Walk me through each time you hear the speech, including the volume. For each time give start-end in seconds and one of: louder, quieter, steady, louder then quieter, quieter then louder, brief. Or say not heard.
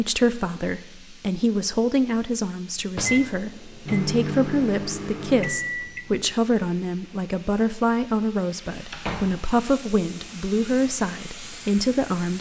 0.0-12.3 steady.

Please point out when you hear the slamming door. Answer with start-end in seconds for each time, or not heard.
3.0-3.5, 8.9-9.4.